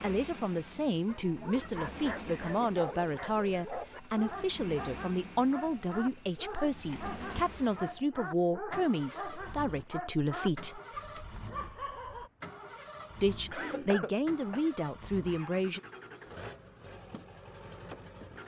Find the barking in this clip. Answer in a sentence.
The barking can be heard from 1.1 to 12.3 s.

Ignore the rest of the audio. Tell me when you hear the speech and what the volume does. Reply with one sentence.
You can hear the speech from 0.0 to 10.8 s, at a steady volume; and briefly from 13.2 to 15.8 s.